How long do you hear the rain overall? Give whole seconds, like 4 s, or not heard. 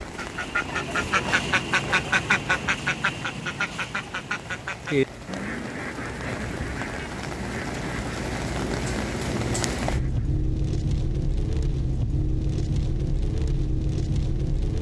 15 s.